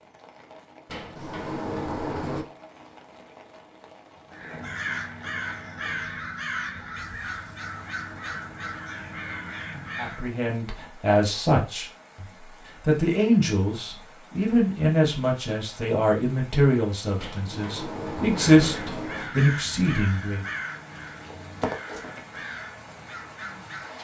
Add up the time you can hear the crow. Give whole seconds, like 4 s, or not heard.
12 s.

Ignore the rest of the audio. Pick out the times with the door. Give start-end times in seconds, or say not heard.
0.8-2.5, 17.1-19.4.